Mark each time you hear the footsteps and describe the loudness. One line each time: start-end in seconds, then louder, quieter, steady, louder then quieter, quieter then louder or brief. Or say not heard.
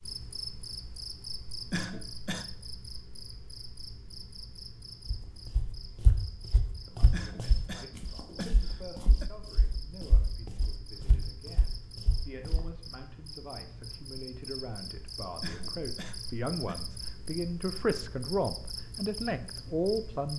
5.0-12.7 quieter then louder.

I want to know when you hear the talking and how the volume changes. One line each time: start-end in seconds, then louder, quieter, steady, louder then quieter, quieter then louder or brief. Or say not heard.
6.8-20.3 louder.